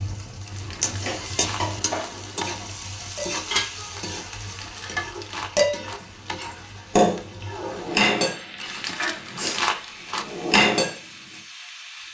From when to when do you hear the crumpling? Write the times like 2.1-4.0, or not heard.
0.5-2.5, 4.4-6.3, 8.6-10.6.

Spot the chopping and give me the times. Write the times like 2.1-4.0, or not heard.
not heard.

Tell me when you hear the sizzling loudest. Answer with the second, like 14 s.
1 s.